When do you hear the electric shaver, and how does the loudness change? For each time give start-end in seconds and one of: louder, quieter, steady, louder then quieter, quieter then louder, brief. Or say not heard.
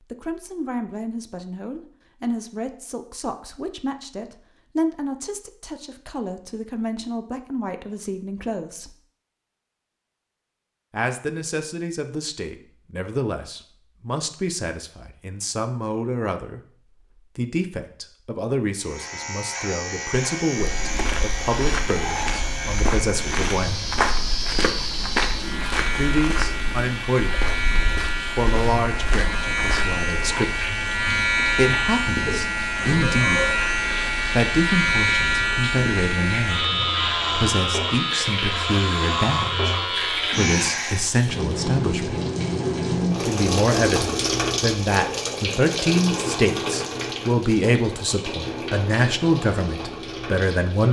18.8-41.1 louder.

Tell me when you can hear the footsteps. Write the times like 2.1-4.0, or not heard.
20.6-30.0.